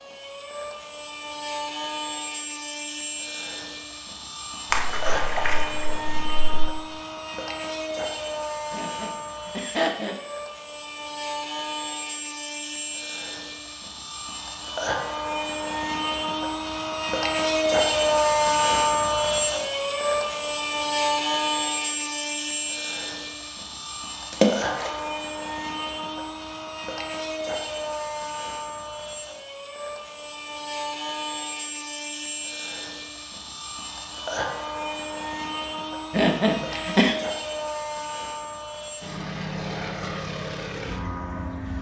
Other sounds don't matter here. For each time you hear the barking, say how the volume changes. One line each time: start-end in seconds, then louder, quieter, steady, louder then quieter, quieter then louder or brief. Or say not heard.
not heard.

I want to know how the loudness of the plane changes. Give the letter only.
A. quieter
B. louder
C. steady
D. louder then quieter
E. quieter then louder
D.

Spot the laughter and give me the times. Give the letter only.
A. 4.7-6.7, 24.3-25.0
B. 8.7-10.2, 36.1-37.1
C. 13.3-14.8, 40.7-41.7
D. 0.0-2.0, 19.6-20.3
B.